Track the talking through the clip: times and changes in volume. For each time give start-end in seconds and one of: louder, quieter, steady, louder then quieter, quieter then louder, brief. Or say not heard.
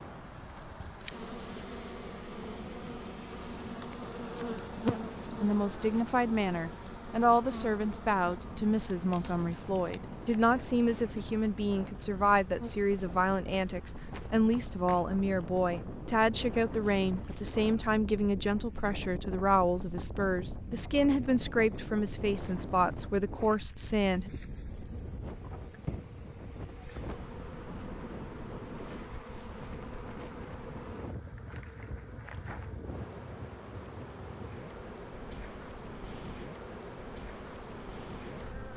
5.2-24.3 steady.